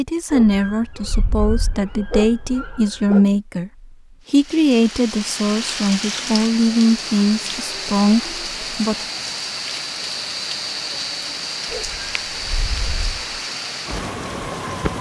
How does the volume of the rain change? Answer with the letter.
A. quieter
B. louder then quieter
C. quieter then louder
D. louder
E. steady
E.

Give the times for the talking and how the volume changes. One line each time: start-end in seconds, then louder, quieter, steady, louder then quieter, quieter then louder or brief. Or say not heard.
0.0-8.9 steady.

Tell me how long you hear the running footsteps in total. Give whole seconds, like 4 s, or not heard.
not heard.